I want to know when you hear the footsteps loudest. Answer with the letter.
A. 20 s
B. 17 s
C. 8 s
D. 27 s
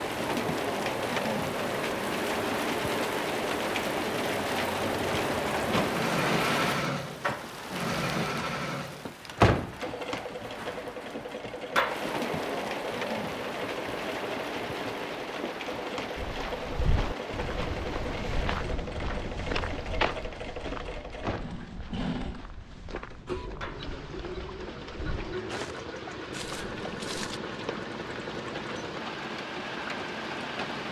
A.